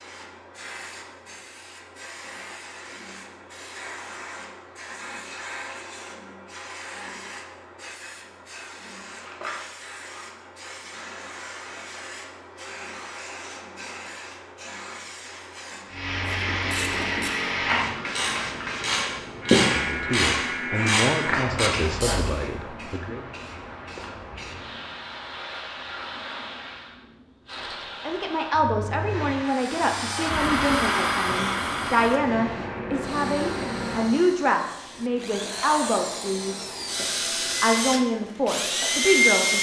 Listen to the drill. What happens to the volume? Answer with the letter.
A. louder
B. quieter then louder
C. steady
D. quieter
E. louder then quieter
B.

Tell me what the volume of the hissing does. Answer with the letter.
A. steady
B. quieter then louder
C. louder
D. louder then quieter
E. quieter
D.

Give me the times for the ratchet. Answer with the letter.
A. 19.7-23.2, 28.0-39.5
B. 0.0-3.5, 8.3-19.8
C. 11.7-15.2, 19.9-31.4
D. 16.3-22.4
D.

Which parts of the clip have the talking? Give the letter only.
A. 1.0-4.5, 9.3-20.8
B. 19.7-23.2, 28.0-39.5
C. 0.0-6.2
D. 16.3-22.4
B.